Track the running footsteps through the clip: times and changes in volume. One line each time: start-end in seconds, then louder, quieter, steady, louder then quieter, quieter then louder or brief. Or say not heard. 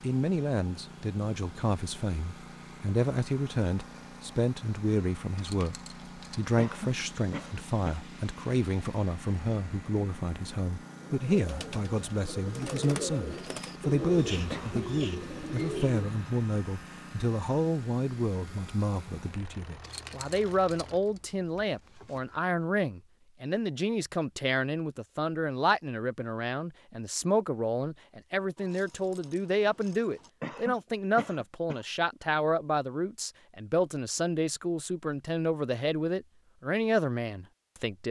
not heard.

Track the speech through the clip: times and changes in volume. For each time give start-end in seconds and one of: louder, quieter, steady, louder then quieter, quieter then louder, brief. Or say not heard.
0.0-38.0 steady.